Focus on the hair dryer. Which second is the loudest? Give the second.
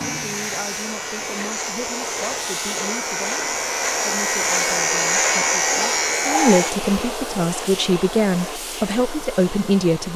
5 s.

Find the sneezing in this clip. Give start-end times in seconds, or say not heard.
not heard.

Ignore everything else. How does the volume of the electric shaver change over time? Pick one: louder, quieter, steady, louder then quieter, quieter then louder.
louder.